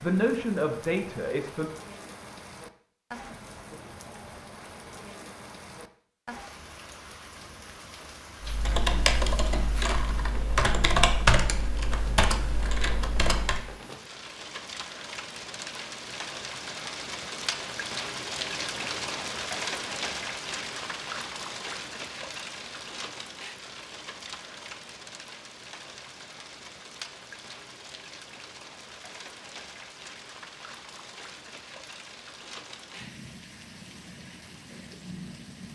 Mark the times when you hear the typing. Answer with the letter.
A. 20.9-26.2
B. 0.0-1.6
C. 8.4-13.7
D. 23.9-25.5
C.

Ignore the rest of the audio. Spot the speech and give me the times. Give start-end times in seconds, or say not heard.
0.0-1.6.